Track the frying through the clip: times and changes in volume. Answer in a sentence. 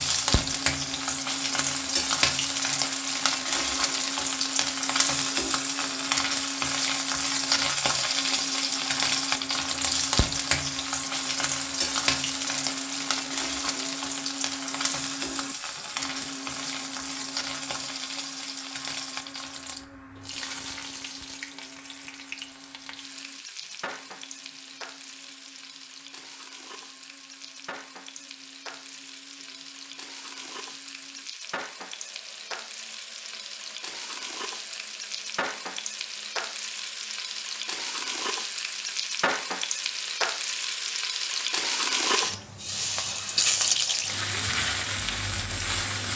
You can hear the frying from 0.0 to 46.1 s, getting quieter then louder.